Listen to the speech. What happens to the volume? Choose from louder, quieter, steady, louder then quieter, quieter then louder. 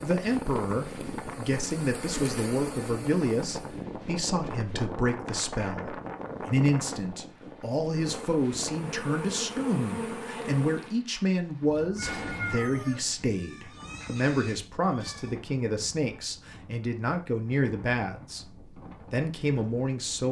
steady.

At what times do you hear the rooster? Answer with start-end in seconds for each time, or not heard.
11.9-15.3.